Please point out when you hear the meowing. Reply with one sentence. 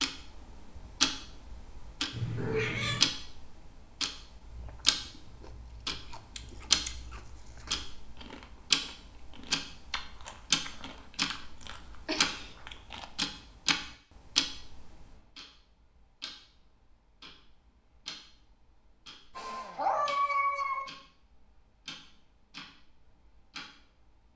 The meowing can be heard from 2.1 to 3.1 s, from 12.1 to 12.5 s and from 19.4 to 20.9 s.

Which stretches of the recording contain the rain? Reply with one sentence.
You can't hear the rain here.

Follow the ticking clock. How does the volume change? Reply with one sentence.
The loudness of the ticking clock goes down.